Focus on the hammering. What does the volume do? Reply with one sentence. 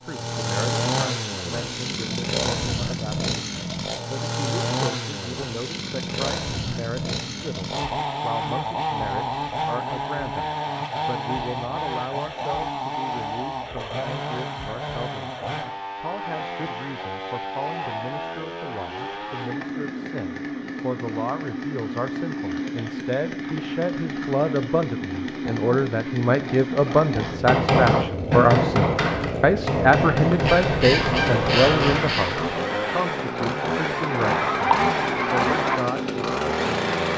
The loudness of the hammering goes down.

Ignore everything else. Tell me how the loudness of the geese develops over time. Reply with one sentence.
The volume of the geese goes down, then up.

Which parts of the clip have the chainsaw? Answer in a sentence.
The chainsaw can be heard from 0.0 to 37.1 s.